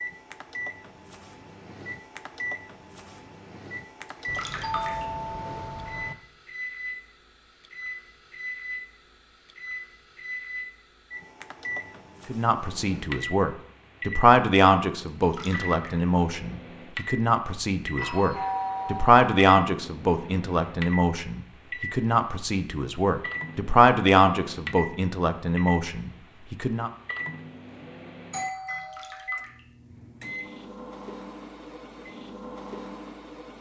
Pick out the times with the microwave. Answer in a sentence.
The microwave can be heard from 0.0 to 33.5 s.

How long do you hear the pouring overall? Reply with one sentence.
You can hear the pouring for 3 seconds altogether.